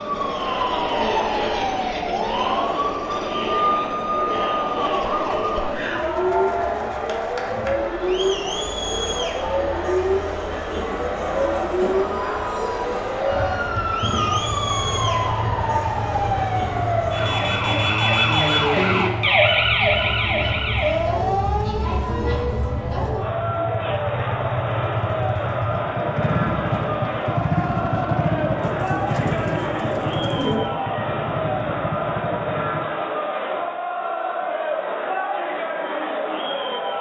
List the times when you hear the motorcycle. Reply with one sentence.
The motorcycle can be heard from 14.2 to 32.9 s.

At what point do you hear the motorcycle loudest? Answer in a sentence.
The volume of the motorcycle peaks at 28 seconds.